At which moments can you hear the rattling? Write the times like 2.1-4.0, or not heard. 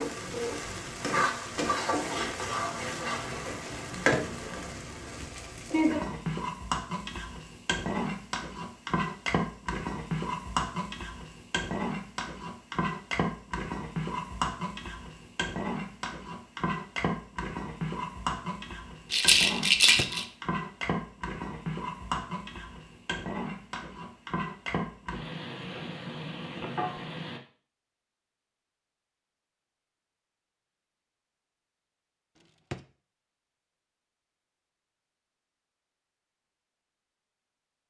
19.1-20.2.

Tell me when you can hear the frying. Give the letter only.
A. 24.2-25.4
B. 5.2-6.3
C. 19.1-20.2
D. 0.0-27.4
D.